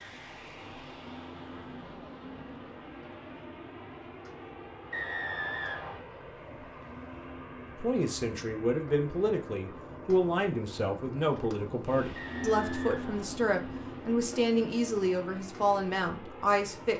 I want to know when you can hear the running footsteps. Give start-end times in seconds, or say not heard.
not heard.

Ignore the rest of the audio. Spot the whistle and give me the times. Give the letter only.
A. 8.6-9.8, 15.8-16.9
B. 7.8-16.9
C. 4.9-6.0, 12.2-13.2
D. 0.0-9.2
C.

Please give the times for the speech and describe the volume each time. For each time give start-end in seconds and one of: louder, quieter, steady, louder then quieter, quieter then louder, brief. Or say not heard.
7.8-16.9 steady.